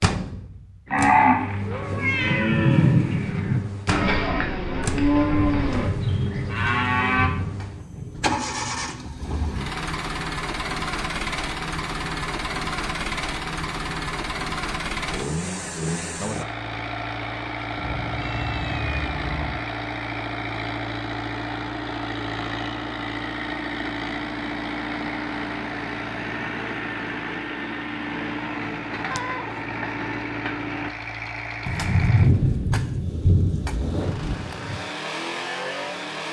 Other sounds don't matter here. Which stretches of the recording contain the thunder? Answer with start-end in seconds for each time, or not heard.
5.5-8.7, 31.6-34.8.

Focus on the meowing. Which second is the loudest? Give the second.
2 s.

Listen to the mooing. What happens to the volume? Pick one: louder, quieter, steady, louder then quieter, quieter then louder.
louder then quieter.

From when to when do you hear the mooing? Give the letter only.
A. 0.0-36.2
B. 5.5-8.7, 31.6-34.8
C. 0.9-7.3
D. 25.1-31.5
C.